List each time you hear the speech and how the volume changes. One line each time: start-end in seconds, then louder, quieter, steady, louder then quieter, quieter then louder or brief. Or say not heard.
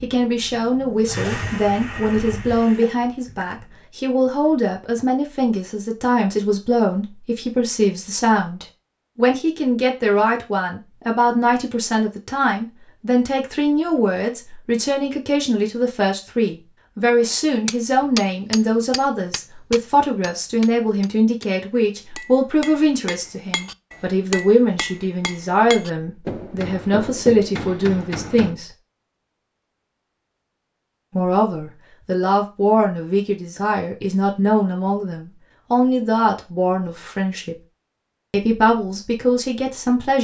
0.0-28.7 steady
31.1-37.5 steady
38.3-40.2 brief.